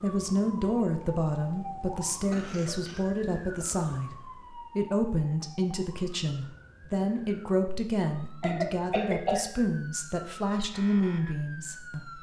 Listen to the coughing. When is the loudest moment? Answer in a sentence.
The loudest moment of the coughing is at 9 seconds.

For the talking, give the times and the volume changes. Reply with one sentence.
The talking can be heard from 0.0 to 12.1 s, at a steady volume.